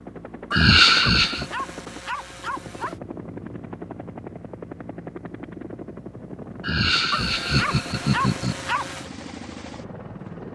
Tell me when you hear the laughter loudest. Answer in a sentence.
The volume of the laughter peaks at 1 second.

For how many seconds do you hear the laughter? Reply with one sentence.
You can hear the laughter for 3 seconds altogether.